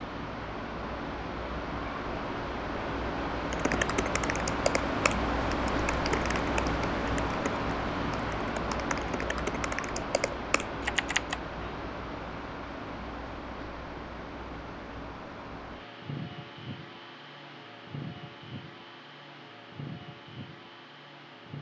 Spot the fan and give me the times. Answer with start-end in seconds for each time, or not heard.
0.0-21.5.